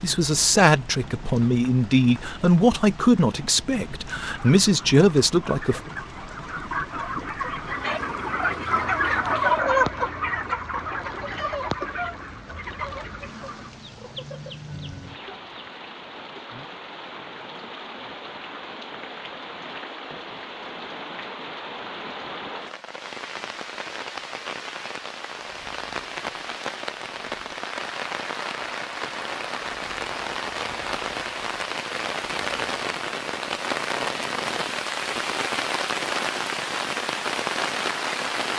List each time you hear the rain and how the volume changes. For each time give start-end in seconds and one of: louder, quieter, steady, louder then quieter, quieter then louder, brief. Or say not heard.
0.0-38.5 louder.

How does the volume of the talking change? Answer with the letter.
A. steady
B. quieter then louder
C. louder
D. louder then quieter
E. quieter
B.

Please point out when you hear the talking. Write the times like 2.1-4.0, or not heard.
0.0-5.8.